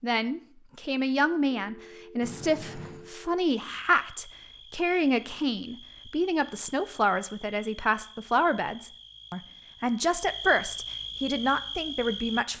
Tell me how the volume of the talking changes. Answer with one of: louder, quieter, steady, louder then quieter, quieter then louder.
steady.